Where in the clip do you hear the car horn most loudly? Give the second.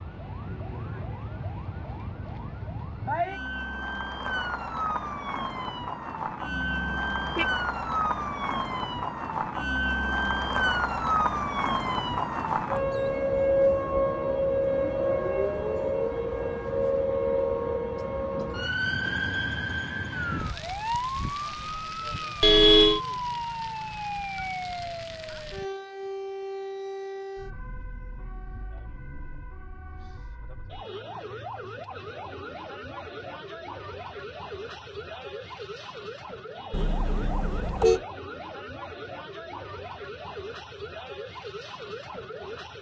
23 s.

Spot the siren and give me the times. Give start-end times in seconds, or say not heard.
0.0-42.7.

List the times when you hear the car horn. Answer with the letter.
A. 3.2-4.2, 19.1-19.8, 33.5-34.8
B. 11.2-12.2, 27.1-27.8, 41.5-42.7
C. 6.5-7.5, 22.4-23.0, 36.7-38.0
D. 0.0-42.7
C.